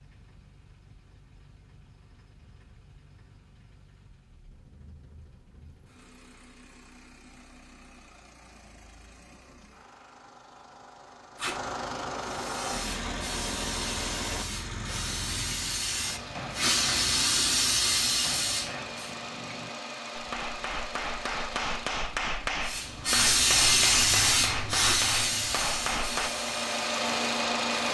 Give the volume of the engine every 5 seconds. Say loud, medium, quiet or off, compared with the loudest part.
quiet, quiet, medium, medium, medium, loud.